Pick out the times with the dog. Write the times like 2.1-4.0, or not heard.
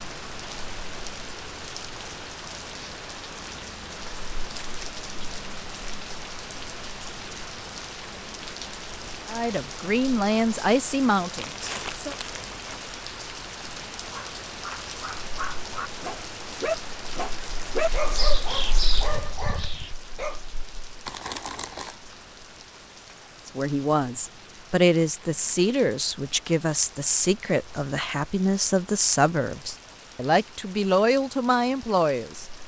13.9-20.4.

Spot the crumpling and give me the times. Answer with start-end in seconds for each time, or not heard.
11.3-12.6, 21.1-21.9.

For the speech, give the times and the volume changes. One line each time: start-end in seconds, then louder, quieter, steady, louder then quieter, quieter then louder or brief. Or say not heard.
9.2-12.2 brief
23.4-32.5 steady.